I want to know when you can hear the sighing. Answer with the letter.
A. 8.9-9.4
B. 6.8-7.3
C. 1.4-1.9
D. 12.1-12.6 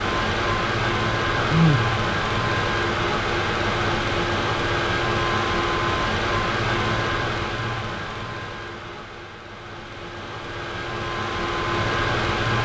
C.